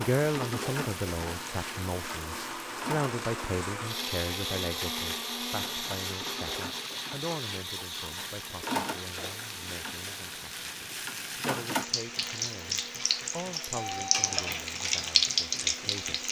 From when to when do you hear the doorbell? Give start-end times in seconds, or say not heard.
13.8-14.6.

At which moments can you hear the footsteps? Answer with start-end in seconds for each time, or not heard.
not heard.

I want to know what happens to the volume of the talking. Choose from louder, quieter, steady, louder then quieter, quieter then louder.
quieter.